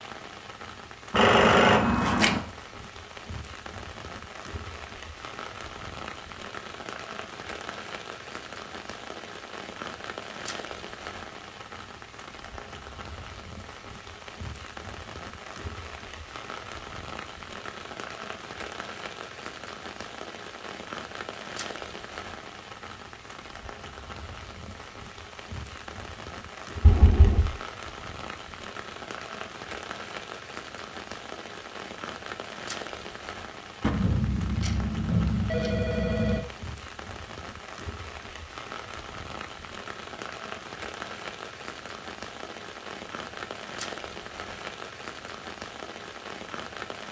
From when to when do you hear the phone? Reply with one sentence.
The phone can be heard from 1.1 to 2.4 s, from 26.8 to 27.4 s and from 33.8 to 36.5 s.